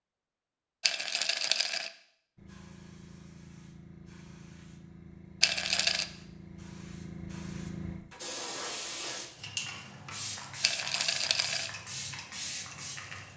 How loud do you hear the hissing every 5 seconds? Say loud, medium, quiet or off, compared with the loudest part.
medium, loud, loud.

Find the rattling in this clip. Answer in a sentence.
You can hear the rattling from 0.8 to 1.9 s, from 5.4 to 6.0 s and from 10.6 to 11.7 s.